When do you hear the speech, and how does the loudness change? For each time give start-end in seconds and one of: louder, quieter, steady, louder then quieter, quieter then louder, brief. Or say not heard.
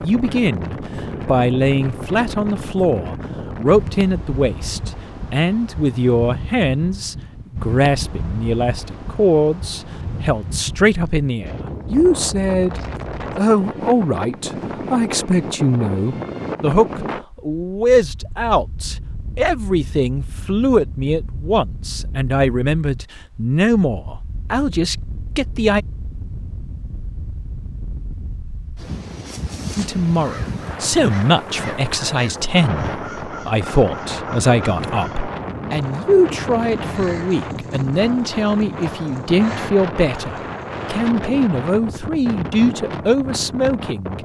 0.0-25.8 steady
29.8-44.1 steady.